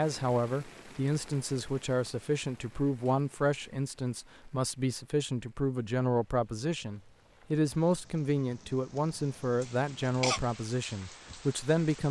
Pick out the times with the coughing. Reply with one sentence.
You can hear the coughing from 9.6 to 10.4 s.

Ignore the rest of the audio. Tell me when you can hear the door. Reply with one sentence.
You can't hear the door here.